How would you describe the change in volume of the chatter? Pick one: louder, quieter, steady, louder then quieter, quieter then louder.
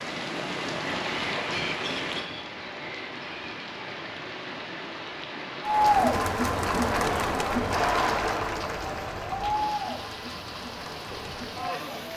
quieter.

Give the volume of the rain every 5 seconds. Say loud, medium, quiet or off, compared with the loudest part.
loud, medium, medium.